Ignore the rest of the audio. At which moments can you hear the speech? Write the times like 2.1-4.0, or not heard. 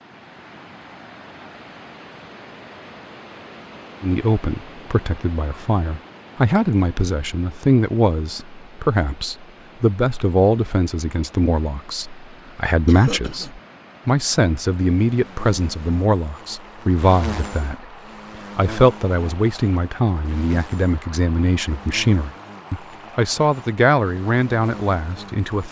4.0-17.8, 18.6-25.6.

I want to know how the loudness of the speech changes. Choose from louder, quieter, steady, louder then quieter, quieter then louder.
steady.